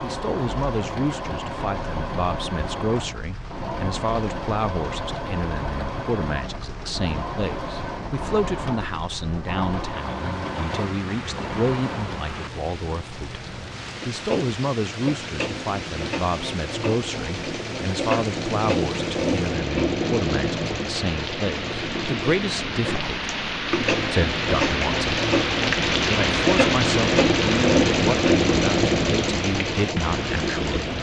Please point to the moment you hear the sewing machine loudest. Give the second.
28 s.